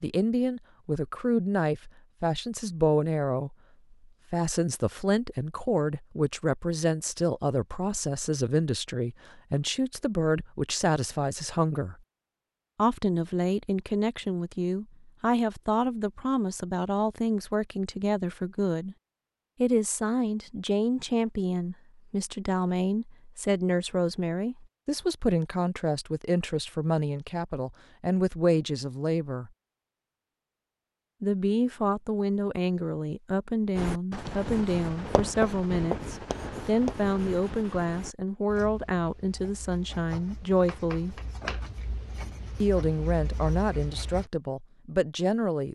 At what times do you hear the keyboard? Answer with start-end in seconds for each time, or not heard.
not heard.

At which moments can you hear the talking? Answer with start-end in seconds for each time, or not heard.
0.0-3.5, 4.3-11.9, 12.8-18.9, 19.6-29.5, 31.2-41.2, 42.6-45.6.